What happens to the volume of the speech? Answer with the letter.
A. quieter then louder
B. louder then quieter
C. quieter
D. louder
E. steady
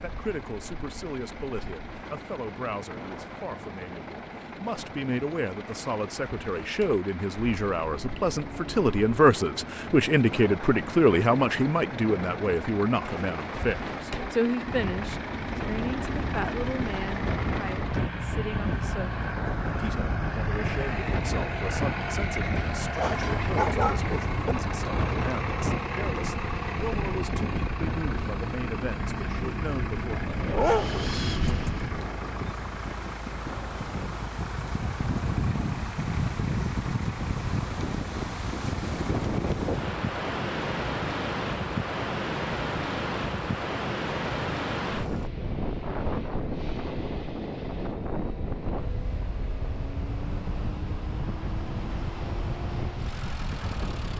B.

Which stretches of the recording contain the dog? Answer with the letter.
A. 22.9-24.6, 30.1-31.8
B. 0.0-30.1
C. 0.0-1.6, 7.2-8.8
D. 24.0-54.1
A.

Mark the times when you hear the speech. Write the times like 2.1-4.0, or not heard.
0.0-30.1.